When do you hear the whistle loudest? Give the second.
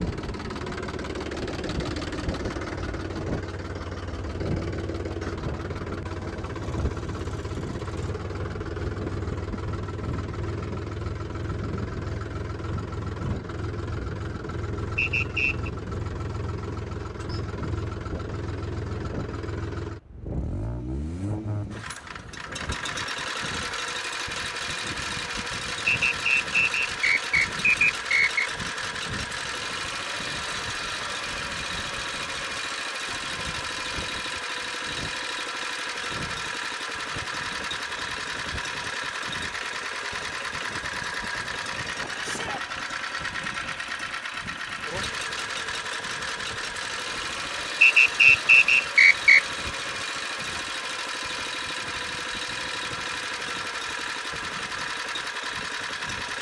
48 s.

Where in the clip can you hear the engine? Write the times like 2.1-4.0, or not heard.
0.0-56.3.